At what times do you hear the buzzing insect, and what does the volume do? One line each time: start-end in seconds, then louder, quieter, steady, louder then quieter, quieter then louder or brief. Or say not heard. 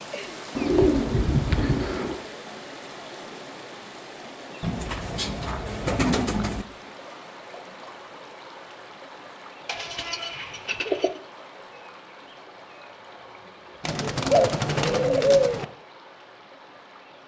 not heard.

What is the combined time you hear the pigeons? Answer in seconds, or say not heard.
7 s.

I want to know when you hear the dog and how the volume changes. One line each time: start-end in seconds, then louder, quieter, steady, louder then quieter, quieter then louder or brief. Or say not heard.
not heard.